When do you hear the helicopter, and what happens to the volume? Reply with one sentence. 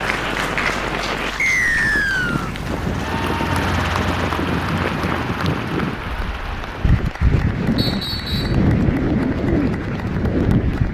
You can hear the helicopter from 2.5 to 7.0 s, getting quieter.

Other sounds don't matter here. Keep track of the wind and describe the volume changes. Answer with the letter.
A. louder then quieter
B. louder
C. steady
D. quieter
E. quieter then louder
B.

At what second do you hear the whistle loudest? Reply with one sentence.
The volume of the whistle peaks at 2 seconds.